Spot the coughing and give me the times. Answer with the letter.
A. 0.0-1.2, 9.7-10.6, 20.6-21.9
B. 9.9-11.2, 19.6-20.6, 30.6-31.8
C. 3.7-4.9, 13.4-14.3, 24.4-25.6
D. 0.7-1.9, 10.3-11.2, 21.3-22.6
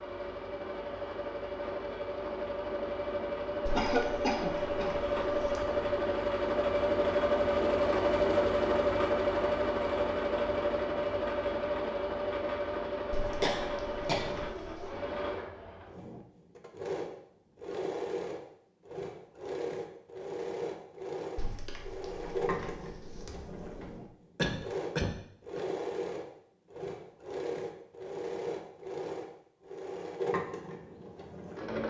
C.